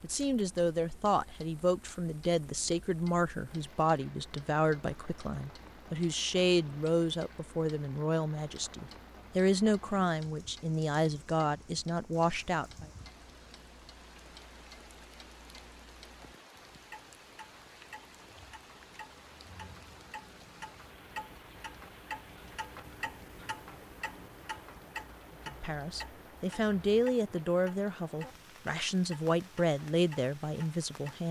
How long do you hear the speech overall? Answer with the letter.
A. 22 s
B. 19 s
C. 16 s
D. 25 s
B.